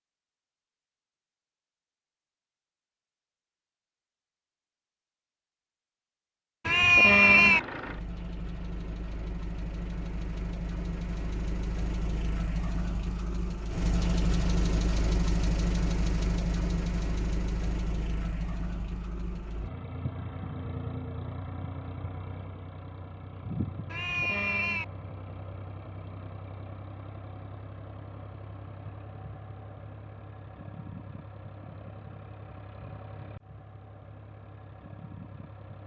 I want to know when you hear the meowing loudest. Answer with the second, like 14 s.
7 s.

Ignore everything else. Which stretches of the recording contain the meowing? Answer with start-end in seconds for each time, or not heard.
6.7-7.6, 23.9-24.9.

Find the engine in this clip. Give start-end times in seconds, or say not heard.
7.2-35.8.